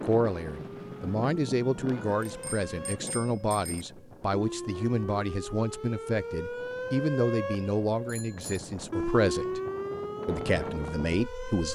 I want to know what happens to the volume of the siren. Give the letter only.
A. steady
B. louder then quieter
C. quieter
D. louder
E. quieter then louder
D.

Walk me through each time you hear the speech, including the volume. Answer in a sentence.
You can hear the speech from 0.0 to 9.6 s, at a steady volume; and briefly from 10.2 to 11.6 s.